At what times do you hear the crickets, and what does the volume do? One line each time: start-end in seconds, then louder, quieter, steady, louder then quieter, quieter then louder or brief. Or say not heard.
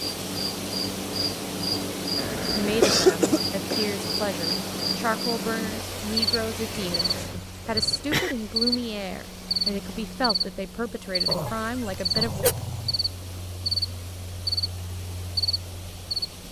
0.0-16.4 steady.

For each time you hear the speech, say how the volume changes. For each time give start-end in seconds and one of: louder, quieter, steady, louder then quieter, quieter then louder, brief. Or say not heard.
2.5-12.4 steady.